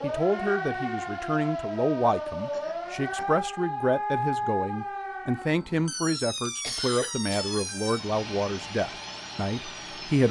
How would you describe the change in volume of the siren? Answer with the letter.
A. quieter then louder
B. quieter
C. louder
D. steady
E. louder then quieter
B.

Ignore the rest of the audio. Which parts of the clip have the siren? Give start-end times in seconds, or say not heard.
0.0-10.2.